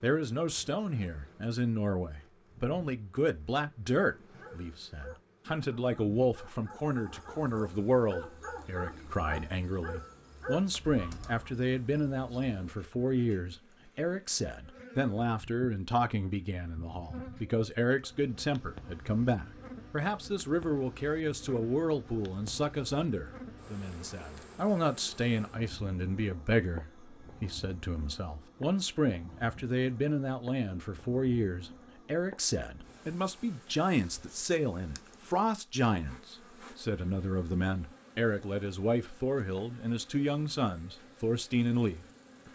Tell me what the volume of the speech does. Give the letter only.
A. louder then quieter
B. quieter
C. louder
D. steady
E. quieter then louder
D.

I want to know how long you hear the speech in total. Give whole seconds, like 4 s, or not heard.
42 s.